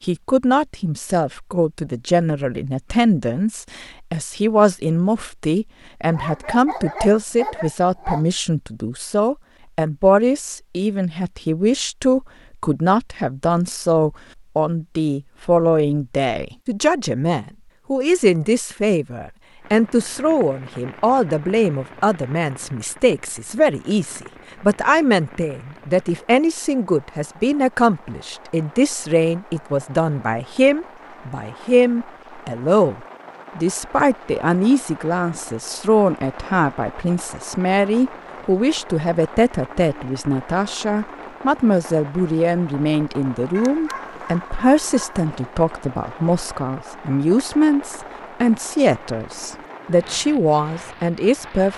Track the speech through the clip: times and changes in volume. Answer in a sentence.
You can hear the speech from 0.0 to 51.7 s, at a steady volume.